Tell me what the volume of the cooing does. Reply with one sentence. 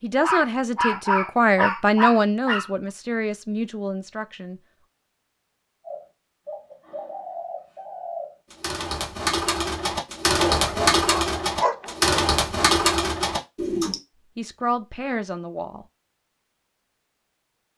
The loudness of the cooing goes up.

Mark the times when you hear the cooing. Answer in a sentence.
You can hear the cooing from 5.8 to 14.0 s.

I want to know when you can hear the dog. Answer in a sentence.
You can hear the dog from 0.2 to 2.7 s and from 10.3 to 12.1 s.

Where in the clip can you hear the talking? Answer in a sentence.
The talking can be heard from 0.0 to 4.6 s and from 14.3 to 15.8 s.